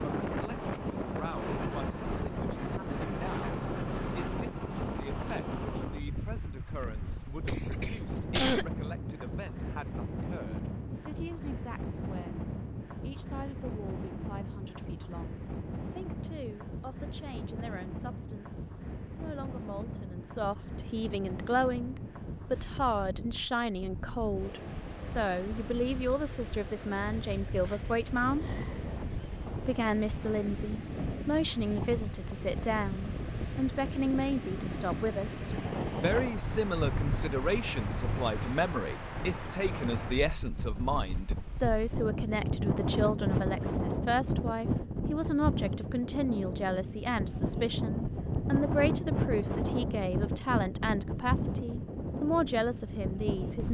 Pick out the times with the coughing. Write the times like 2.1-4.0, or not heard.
7.5-8.7.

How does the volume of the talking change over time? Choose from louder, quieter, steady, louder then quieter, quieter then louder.
louder.